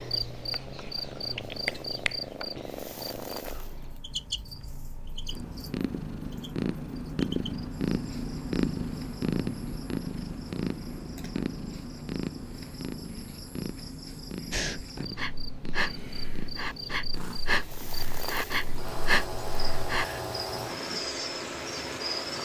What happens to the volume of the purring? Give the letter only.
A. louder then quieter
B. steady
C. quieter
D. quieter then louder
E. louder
A.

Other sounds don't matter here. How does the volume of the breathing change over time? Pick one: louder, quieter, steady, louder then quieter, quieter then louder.
quieter then louder.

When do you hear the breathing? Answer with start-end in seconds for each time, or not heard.
14.5-20.1.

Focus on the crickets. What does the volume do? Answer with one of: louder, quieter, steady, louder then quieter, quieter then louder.
quieter then louder.